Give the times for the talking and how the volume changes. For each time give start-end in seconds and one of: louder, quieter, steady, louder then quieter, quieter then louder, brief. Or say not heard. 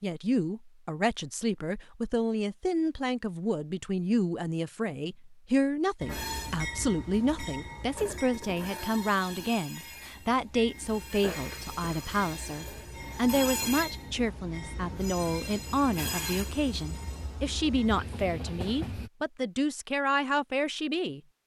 0.0-21.2 steady.